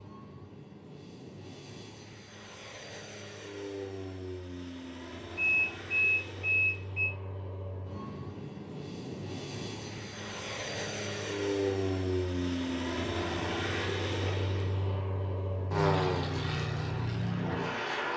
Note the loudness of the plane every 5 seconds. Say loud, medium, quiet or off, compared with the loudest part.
quiet, medium, loud, loud.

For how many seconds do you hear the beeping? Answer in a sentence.
The beeping can be heard for 2 seconds in total.